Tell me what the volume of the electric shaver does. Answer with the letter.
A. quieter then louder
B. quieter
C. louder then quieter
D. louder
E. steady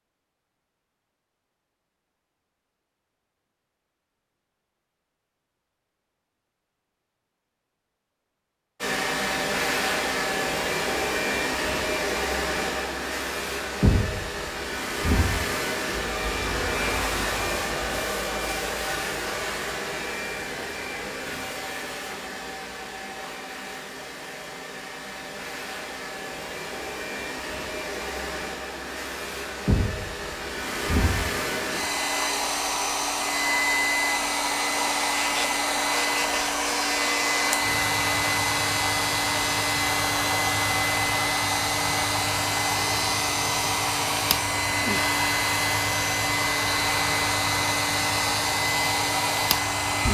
E.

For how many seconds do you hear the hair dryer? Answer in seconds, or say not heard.
41 s.